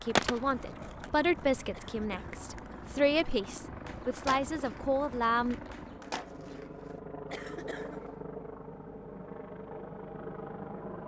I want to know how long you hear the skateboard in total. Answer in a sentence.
You can hear the skateboard for 7 seconds altogether.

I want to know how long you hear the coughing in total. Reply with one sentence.
The coughing can be heard for 2 seconds in total.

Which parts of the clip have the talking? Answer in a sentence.
The talking can be heard from 0.0 to 5.5 s.